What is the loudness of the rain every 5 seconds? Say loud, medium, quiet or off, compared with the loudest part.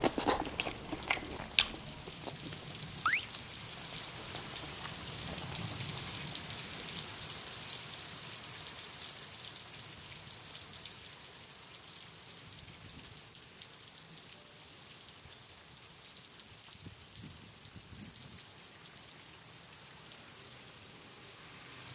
loud, loud, medium, medium, medium.